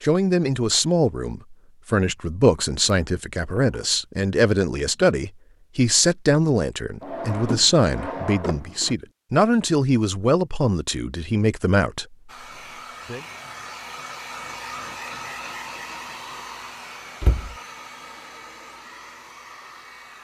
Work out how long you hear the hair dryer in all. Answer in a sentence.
You can hear the hair dryer for 8 seconds altogether.